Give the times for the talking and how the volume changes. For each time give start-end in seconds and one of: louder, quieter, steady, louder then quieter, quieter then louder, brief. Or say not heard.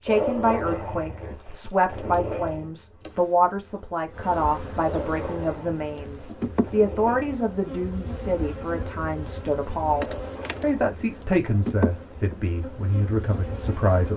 0.0-14.1 steady.